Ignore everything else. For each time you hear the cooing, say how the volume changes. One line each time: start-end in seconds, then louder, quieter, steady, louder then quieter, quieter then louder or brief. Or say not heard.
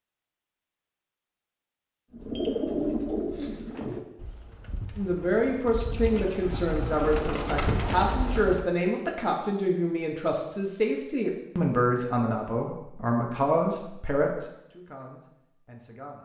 2.1-8.7 quieter then louder.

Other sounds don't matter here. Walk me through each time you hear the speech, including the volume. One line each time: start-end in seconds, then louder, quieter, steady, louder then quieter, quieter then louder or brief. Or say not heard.
5.0-16.2 quieter.